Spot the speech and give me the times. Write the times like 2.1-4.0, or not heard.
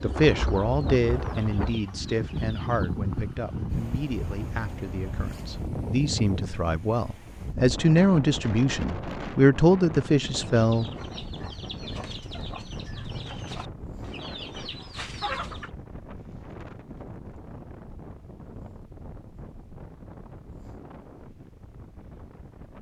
0.0-10.8.